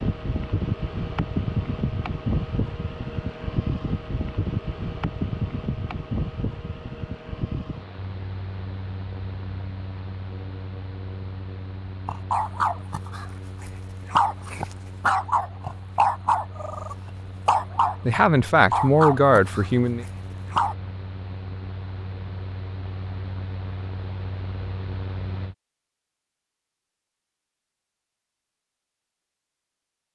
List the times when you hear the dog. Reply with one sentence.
You can hear the dog from 12.1 to 20.8 s.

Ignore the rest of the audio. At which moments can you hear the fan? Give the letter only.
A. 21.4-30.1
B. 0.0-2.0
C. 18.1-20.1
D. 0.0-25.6
D.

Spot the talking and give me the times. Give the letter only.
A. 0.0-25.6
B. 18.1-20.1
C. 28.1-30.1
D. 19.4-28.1
B.